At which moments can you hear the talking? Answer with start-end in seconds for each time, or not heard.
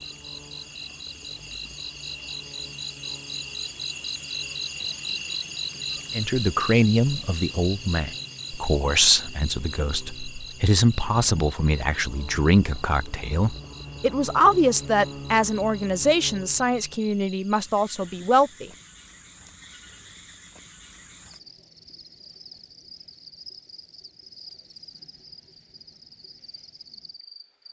6.2-18.7.